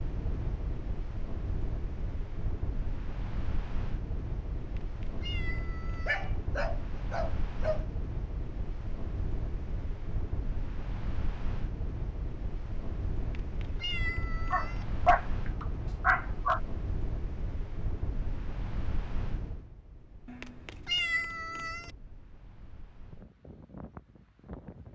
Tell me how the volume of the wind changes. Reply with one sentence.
The loudness of the wind goes down.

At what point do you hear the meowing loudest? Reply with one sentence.
The volume of the meowing peaks at 21 seconds.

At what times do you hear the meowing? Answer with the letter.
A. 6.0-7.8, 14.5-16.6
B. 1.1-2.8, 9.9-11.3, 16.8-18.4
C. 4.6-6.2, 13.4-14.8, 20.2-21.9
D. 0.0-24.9
C.